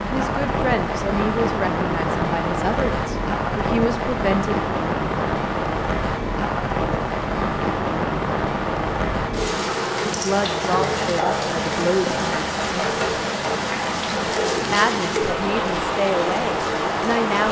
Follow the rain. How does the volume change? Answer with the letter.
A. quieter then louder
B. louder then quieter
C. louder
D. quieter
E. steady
E.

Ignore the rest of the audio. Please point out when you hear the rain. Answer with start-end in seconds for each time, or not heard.
0.0-17.4.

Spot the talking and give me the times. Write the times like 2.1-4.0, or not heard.
0.0-4.5, 10.2-12.9, 14.7-17.4.